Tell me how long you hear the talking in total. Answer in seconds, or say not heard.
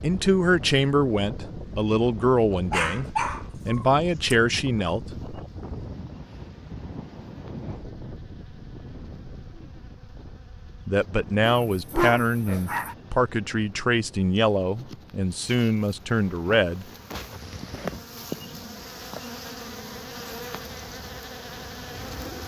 11 s.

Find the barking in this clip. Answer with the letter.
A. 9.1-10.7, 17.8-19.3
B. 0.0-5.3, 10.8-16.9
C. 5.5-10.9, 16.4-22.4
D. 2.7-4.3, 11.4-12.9
D.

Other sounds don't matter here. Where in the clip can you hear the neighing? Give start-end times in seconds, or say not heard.
not heard.